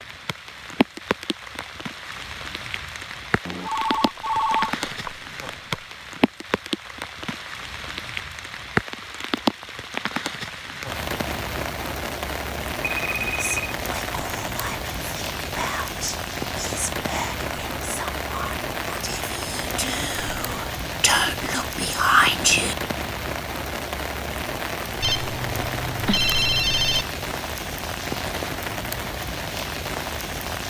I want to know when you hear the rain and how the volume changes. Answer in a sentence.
The rain can be heard from 0.0 to 30.6 s, at a steady volume.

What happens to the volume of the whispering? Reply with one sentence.
The volume of the whispering goes up.